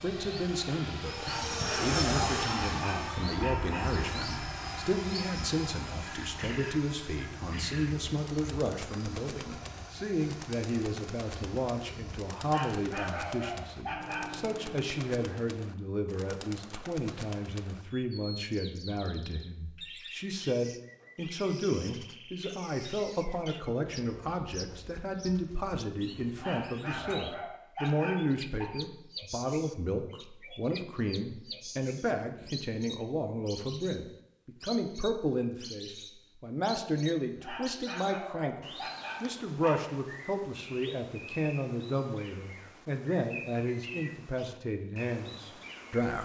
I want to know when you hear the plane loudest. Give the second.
2 s.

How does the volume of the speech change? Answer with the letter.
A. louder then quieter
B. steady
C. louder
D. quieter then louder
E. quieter
B.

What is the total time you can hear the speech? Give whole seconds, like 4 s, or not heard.
46 s.